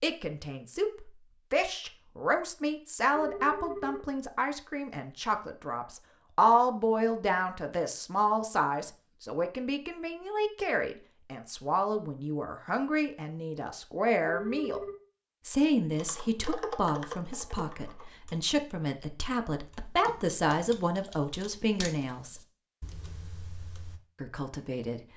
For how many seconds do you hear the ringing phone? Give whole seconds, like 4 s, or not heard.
2 s.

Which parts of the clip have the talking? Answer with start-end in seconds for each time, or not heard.
0.0-14.8, 15.4-22.4, 24.2-25.0.